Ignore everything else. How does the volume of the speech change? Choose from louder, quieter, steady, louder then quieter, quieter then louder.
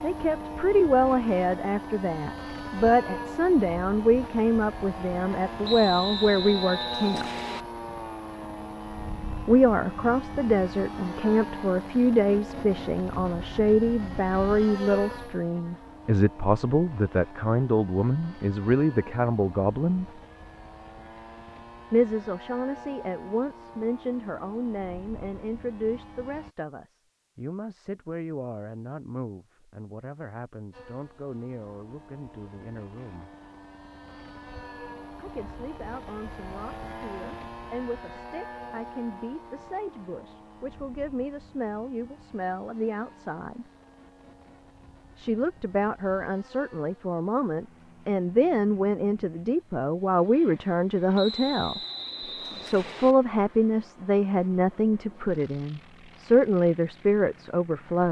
quieter then louder.